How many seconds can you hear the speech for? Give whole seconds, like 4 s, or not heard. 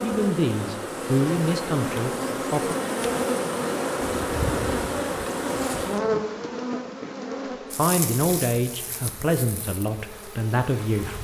6 s.